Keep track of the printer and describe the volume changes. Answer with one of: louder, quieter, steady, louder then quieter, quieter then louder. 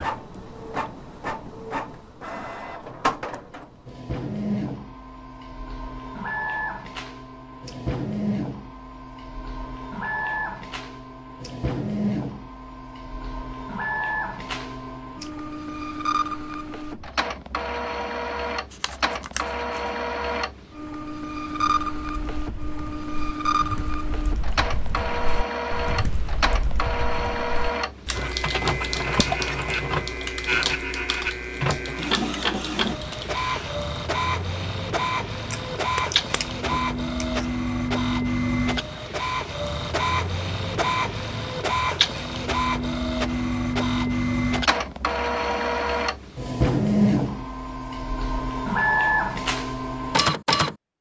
louder.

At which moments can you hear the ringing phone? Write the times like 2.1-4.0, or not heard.
not heard.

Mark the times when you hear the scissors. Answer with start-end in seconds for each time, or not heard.
18.7-19.9, 35.5-37.5.